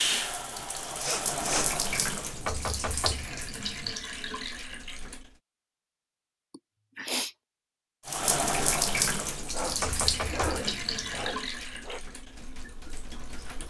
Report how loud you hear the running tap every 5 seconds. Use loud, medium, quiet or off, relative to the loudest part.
loud, loud, medium.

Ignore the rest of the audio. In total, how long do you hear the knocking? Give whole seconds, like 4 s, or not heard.
3 s.